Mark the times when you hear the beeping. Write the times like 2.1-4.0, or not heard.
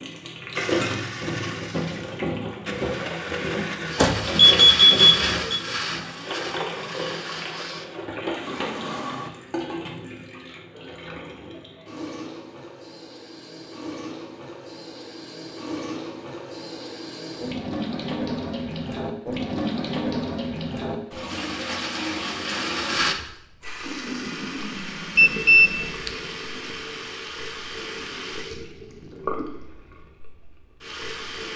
4.0-5.6, 25.1-26.1.